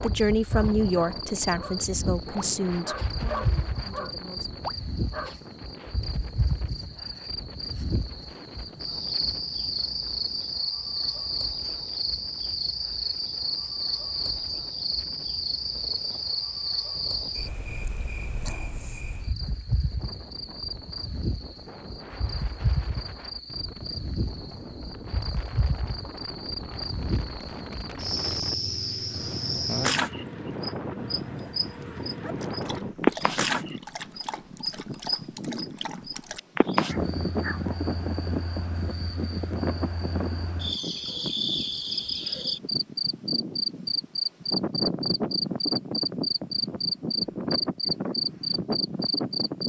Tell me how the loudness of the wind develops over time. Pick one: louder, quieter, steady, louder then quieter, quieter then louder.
quieter then louder.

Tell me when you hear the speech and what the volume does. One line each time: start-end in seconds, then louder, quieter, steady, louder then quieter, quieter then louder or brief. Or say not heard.
0.0-4.5 quieter.